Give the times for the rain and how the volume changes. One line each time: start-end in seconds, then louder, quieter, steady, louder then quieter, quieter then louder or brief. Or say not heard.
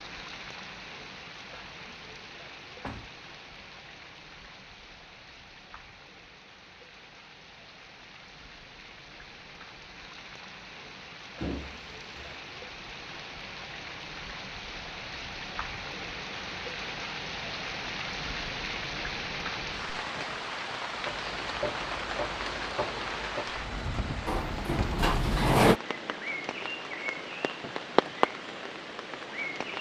0.0-29.7 louder.